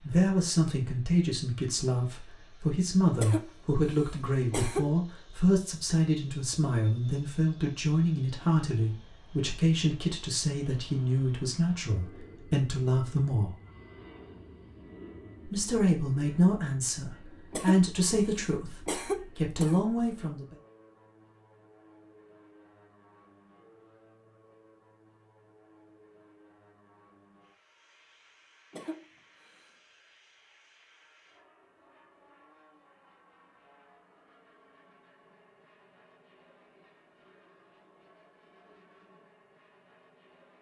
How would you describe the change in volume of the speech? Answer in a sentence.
The loudness of the speech stays about the same.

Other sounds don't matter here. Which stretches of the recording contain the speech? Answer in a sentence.
The speech can be heard from 0.0 to 13.6 s and from 15.4 to 20.6 s.